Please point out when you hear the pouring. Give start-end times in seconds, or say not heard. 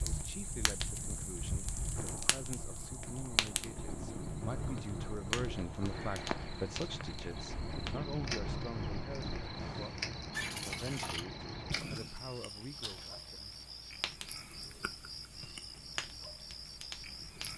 10.3-11.2.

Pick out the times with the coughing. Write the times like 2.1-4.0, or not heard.
not heard.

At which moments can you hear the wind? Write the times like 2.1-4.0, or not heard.
0.0-9.9.